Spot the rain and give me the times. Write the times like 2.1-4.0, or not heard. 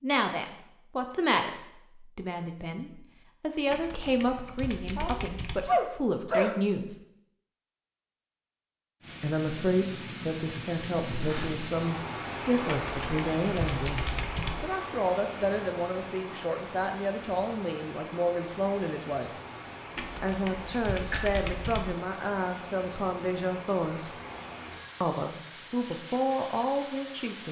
9.0-27.4.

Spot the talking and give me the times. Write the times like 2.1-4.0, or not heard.
0.0-7.0, 9.2-19.3, 20.2-24.1, 25.0-27.4.